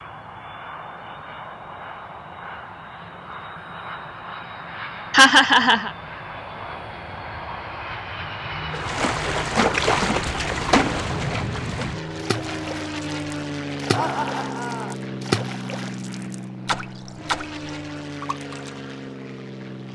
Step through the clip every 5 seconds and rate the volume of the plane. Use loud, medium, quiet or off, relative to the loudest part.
medium, loud, loud, loud.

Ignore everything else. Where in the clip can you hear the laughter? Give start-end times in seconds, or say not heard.
5.1-5.9, 13.9-14.9.